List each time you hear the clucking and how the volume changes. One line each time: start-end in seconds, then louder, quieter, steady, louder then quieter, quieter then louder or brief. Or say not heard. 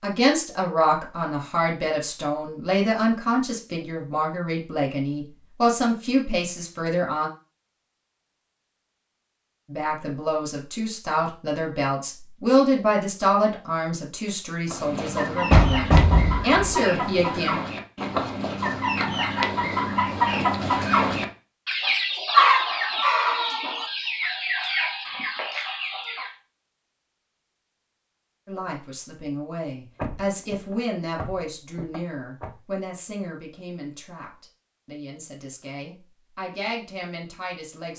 14.7-26.3 louder then quieter.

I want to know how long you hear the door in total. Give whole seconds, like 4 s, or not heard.
4 s.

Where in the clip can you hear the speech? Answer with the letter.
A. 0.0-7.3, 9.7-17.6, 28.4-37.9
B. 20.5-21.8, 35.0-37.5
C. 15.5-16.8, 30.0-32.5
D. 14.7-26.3
A.